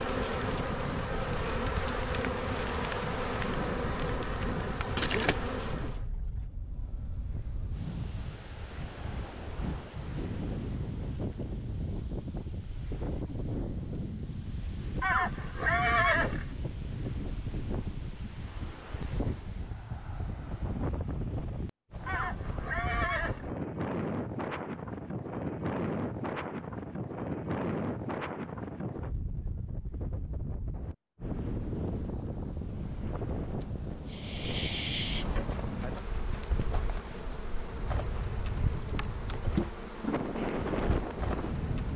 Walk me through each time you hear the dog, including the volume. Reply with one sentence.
The dog can't be heard in this clip.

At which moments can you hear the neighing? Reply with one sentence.
The neighing can be heard from 15.0 to 16.5 s and from 22.1 to 23.5 s.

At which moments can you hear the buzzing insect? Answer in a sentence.
The buzzing insect can be heard from 0.0 to 6.0 s and from 34.1 to 41.9 s.